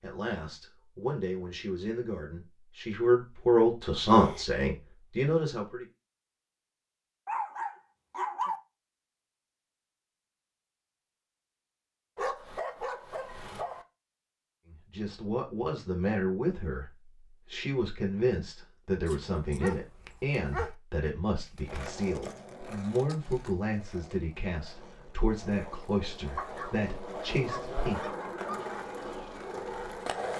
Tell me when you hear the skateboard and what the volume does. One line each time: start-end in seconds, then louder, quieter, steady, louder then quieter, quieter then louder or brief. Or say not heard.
21.4-30.3 quieter then louder.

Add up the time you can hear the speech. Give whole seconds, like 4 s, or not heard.
19 s.